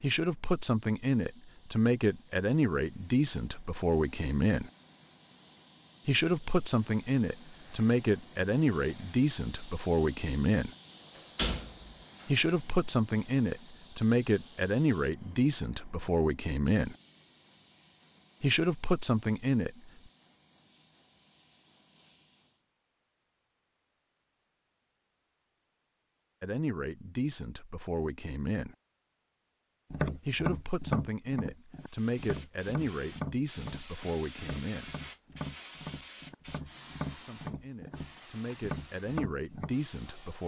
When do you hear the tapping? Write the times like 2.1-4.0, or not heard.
29.9-39.8.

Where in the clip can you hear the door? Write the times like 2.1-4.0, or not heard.
11.2-12.4.